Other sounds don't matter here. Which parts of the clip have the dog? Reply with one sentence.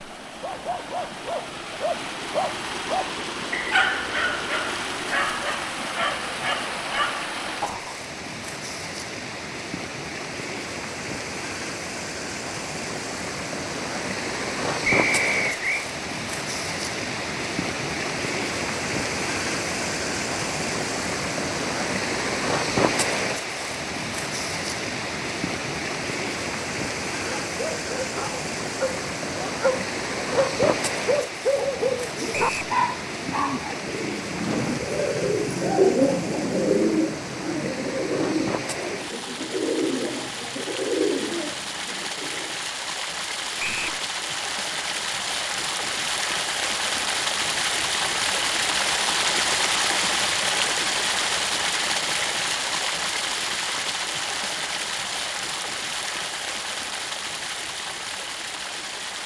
The dog can be heard from 0.3 to 8.0 s and from 27.2 to 33.8 s.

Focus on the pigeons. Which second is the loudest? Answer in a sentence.
The volume of the pigeons peaks at 36 seconds.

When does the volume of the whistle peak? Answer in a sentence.
The loudest moment of the whistle is at 15 seconds.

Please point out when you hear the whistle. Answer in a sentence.
The whistle can be heard from 14.8 to 15.8 s, from 32.3 to 32.8 s and from 43.5 to 44.0 s.